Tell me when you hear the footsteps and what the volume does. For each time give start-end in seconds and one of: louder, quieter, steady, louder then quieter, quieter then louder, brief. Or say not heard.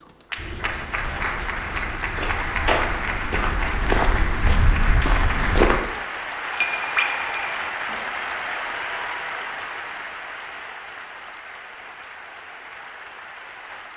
0.3-5.8 louder.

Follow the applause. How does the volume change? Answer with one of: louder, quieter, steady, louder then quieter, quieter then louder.
quieter.